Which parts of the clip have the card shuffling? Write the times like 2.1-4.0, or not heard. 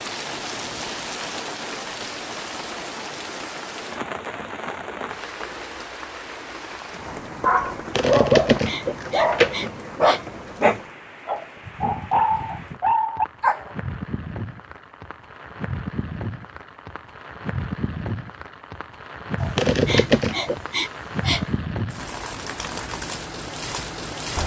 8.0-9.7, 19.6-20.6.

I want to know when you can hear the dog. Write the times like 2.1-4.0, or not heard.
7.4-13.7.